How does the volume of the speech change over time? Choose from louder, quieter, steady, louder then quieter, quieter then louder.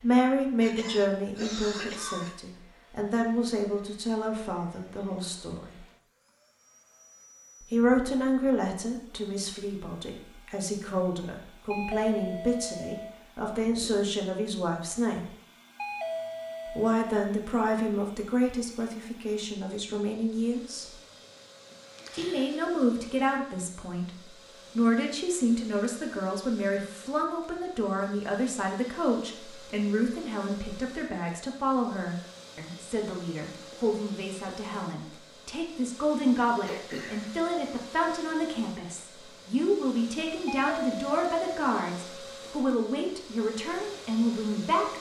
steady.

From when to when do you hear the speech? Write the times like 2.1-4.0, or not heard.
0.0-5.8, 7.6-15.2, 16.7-20.9, 22.1-44.9.